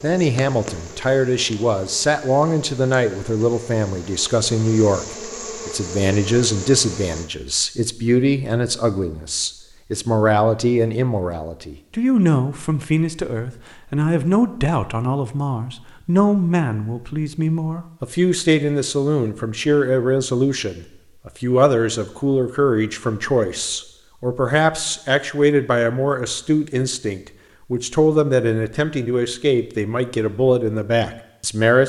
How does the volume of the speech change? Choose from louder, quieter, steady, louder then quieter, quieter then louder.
steady.